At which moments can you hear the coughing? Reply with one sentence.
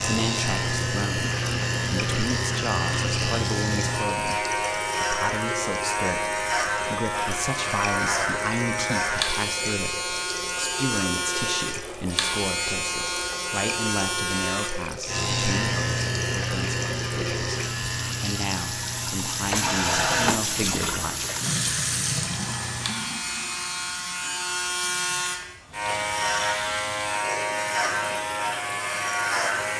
The coughing can't be heard in this clip.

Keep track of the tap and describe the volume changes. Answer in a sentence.
The loudness of the tap goes up, then down.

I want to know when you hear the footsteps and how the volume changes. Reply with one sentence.
The footsteps can't be heard in this clip.